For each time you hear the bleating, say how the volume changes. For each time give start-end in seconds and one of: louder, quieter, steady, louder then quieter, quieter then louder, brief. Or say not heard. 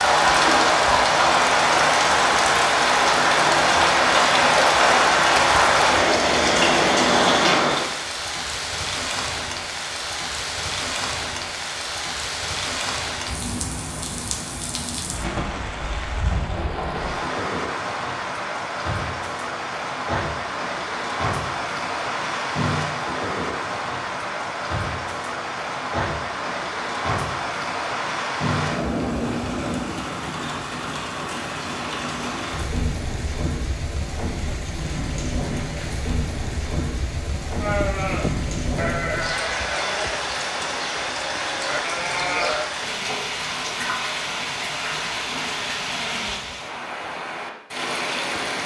37.6-42.7 quieter then louder.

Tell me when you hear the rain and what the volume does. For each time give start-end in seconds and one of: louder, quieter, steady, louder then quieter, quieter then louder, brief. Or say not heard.
0.0-48.6 quieter.